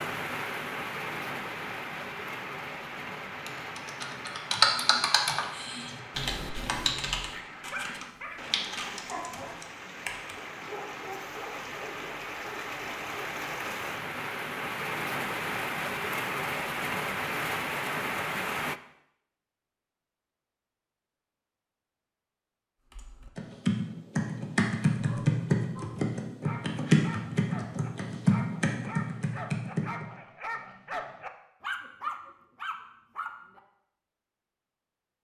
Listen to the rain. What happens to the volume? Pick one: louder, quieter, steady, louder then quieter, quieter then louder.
quieter then louder.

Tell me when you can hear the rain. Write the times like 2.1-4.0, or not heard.
0.0-18.8.